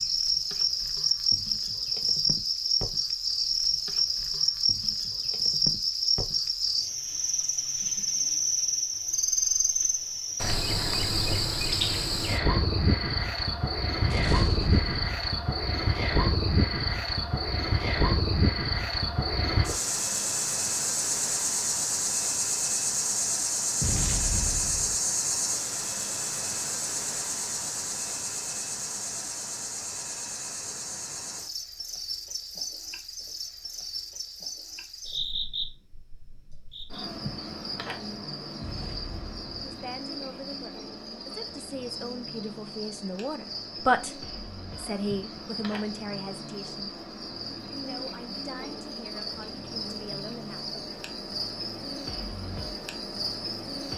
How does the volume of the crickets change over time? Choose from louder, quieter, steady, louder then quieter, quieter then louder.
quieter.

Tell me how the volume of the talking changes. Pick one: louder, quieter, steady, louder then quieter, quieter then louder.
louder then quieter.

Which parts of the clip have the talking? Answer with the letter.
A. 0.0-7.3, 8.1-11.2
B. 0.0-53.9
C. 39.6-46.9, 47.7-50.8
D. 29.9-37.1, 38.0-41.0
C.